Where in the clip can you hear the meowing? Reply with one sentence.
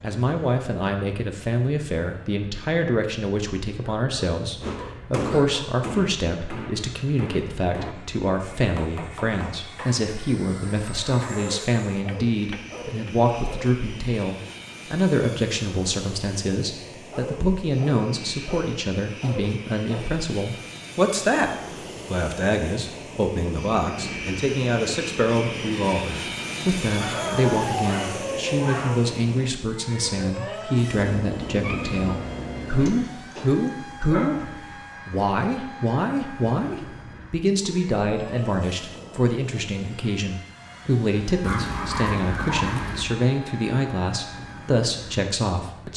The meowing can be heard from 30.9 to 33.0 s.